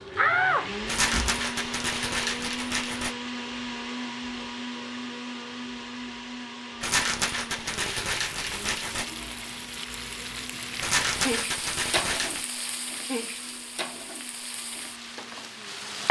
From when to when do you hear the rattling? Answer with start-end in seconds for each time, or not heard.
0.8-3.1, 6.8-9.1, 10.8-12.4.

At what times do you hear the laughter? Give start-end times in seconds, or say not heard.
not heard.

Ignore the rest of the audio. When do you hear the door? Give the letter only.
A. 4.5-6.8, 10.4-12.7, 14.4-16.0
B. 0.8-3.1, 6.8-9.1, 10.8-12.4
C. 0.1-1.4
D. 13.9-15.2
C.